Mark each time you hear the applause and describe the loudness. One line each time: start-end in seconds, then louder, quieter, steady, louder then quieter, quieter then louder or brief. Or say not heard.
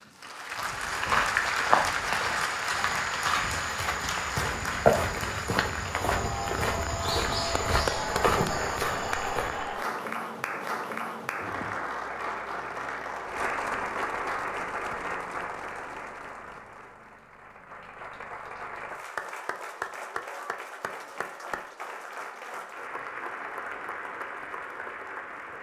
0.0-25.5 quieter.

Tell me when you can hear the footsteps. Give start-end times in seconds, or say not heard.
0.6-9.7.